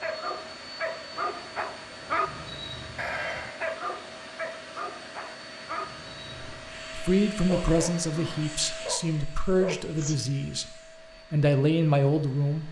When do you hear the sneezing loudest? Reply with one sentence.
The loudest moment of the sneezing is at 3 seconds.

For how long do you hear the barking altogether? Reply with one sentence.
You can hear the barking for 9 seconds altogether.